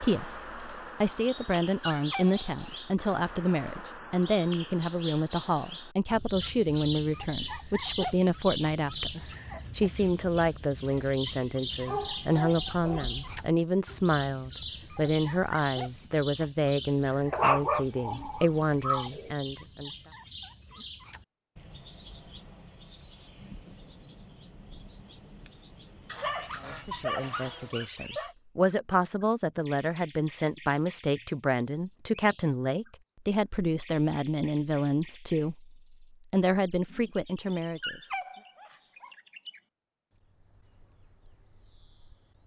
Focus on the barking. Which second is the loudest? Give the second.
18 s.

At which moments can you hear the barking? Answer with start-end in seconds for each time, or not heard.
1.9-2.8, 11.8-13.4, 17.3-19.3, 26.1-28.4, 37.5-39.1.